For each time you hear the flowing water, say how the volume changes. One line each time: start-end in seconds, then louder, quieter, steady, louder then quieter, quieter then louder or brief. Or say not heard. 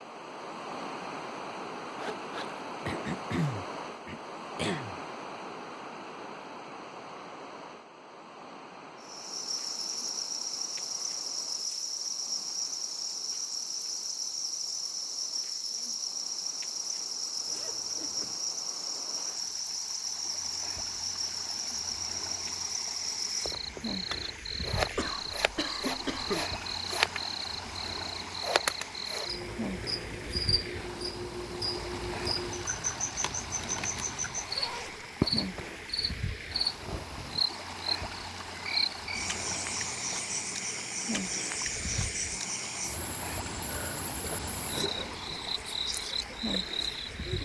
0.0-47.4 quieter then louder.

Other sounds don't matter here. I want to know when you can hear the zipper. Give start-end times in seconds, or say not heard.
1.9-3.2, 17.4-18.4, 34.3-35.0.